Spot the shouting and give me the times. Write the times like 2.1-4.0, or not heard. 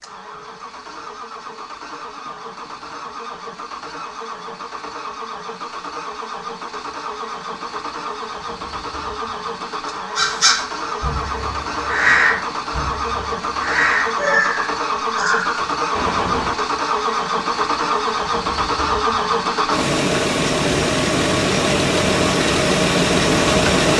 not heard.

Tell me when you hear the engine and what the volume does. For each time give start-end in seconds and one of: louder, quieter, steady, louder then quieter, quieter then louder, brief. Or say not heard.
0.0-23.9 louder.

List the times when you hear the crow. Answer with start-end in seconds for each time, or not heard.
10.2-16.6.